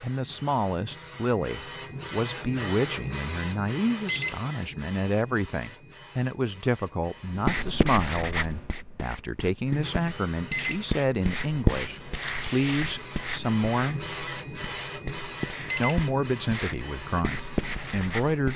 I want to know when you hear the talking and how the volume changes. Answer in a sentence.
The talking can be heard from 0.0 to 14.1 s, at a steady volume; and briefly from 15.8 to 18.5 s.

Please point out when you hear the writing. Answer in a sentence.
You can hear the writing from 7.3 to 18.5 s.